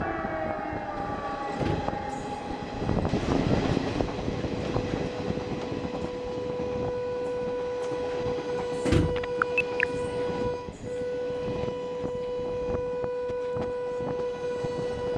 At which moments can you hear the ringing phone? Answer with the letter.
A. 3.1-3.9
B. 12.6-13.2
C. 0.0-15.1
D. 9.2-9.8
D.